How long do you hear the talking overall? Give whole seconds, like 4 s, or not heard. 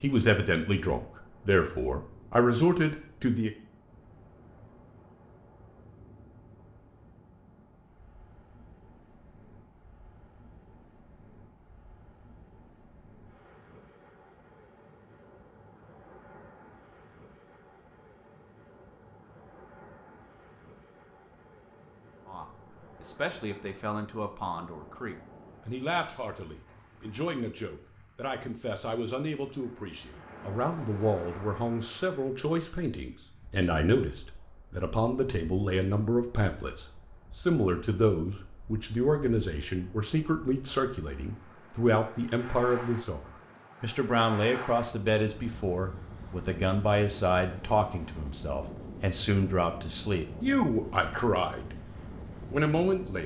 34 s.